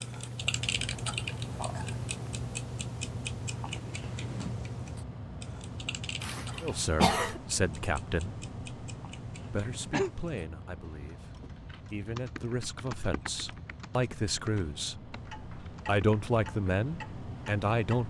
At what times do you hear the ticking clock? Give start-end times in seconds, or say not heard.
0.0-18.0.